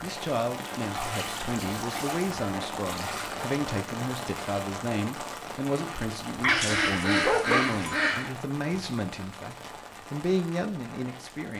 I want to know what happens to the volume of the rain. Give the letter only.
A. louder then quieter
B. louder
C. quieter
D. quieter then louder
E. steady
C.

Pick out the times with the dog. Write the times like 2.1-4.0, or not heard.
6.4-7.8.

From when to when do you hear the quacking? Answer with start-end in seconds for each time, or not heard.
6.5-8.3.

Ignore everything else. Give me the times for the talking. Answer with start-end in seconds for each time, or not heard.
0.0-11.5.